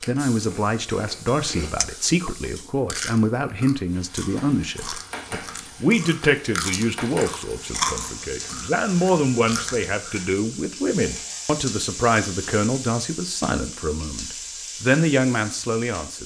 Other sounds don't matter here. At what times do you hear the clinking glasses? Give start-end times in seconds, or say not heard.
1.8-2.5.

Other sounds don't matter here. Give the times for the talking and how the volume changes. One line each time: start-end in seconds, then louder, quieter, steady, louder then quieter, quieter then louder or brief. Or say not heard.
0.1-16.2 steady.